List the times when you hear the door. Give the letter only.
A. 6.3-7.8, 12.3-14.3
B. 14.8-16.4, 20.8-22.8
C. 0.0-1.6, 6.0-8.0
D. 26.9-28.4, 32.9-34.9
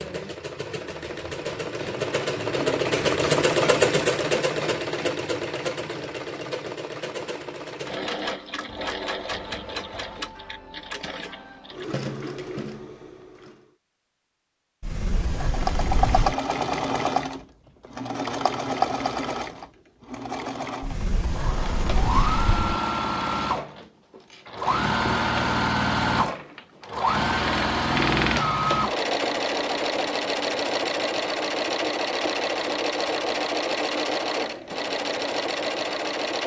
B.